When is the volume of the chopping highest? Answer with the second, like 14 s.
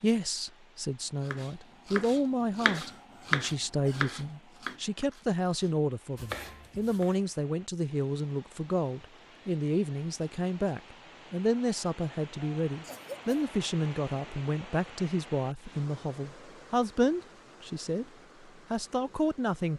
3 s.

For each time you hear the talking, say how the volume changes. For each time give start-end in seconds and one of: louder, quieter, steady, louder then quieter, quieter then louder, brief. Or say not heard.
0.0-18.1 steady
18.7-19.7 brief.